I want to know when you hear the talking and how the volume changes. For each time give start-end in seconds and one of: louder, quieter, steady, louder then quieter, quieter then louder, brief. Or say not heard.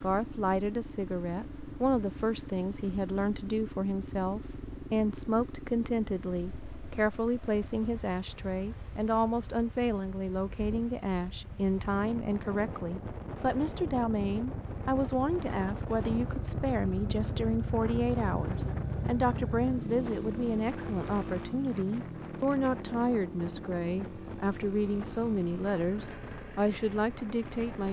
0.0-27.8 steady.